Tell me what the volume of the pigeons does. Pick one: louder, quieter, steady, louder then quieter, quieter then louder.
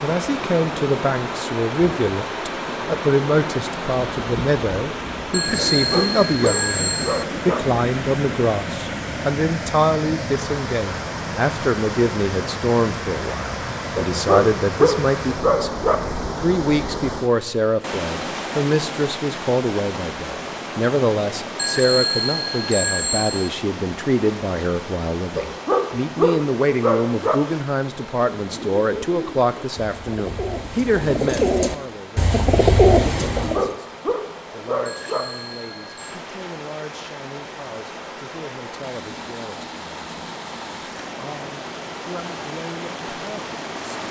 louder.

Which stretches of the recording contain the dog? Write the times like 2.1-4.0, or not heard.
5.8-7.6, 13.9-15.9, 25.4-27.4, 33.4-35.2.